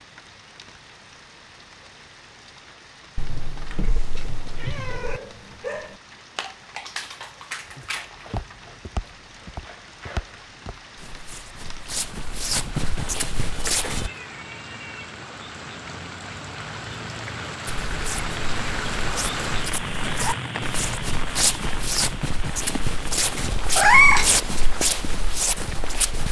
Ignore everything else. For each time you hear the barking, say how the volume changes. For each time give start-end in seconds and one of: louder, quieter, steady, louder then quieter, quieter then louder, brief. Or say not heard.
4.8-10.4 quieter.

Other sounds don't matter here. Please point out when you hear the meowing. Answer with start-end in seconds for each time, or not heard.
3.1-5.2, 13.6-15.1, 23.8-24.3.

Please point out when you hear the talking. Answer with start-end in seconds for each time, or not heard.
not heard.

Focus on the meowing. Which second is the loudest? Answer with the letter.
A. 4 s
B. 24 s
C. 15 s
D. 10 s
B.